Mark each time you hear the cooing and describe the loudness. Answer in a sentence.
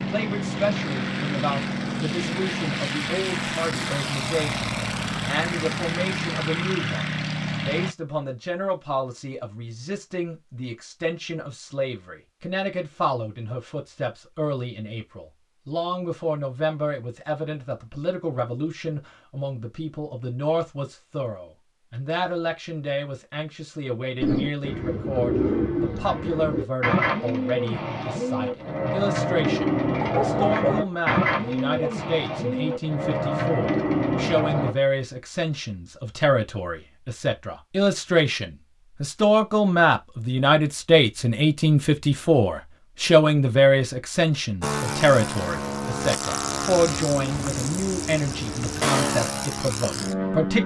You can hear the cooing from 24.2 to 34.8 s, at a steady volume.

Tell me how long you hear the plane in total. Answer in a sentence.
You can hear the plane for 14 seconds altogether.